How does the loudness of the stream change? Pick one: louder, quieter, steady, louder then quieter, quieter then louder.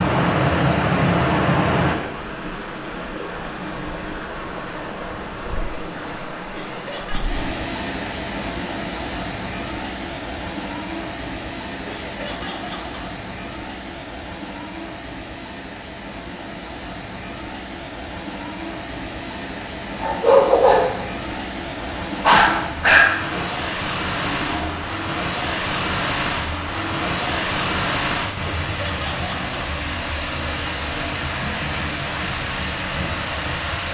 quieter then louder.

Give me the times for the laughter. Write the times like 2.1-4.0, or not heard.
6.5-7.5, 11.8-12.9, 28.4-29.6.